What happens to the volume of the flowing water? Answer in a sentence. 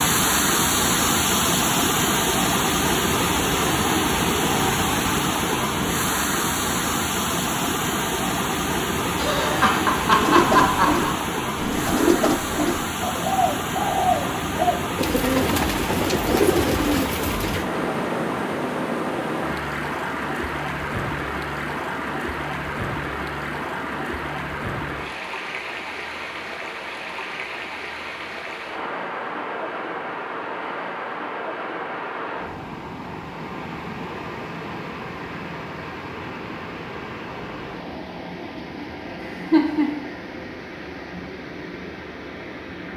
The volume of the flowing water goes down.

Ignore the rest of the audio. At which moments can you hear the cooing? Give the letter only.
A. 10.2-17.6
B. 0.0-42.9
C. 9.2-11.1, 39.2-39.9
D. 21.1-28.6
A.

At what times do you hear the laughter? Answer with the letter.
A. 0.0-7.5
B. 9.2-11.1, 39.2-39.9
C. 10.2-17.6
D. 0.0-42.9
B.